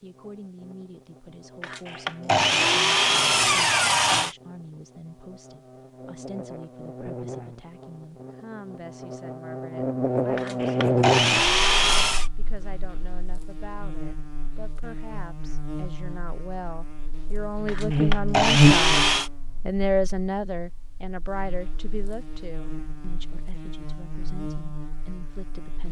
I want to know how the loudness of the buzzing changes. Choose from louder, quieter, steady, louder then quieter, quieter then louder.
louder then quieter.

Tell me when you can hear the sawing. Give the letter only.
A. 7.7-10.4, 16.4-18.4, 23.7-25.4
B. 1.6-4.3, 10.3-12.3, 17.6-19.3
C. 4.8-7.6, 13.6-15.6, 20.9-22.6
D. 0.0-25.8
B.